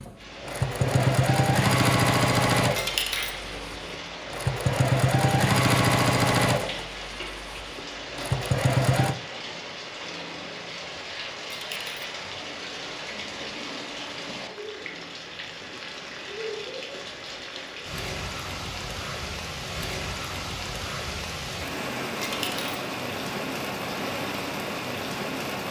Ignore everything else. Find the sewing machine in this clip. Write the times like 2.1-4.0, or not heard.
0.0-9.2.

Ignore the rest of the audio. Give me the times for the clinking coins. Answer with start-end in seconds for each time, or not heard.
2.8-3.4, 11.5-12.1, 22.2-22.8.